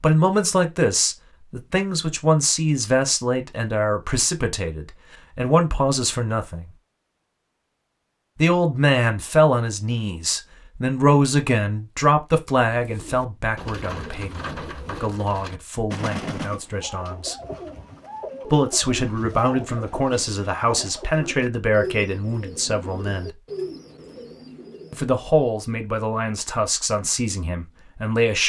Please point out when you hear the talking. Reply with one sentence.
You can hear the talking from 0.0 to 6.7 s, from 8.3 to 17.4 s, from 18.5 to 23.3 s and from 24.9 to 28.4 s.